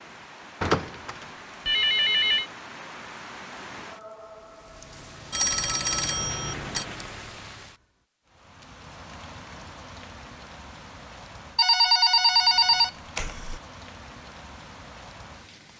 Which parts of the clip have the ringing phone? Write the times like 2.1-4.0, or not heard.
0.6-2.5, 5.3-6.8, 11.6-13.6.